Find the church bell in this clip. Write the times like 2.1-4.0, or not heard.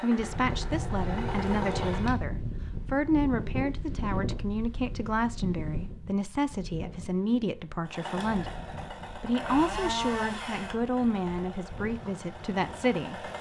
not heard.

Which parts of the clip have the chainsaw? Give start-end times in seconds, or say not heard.
0.0-2.1, 7.8-13.3.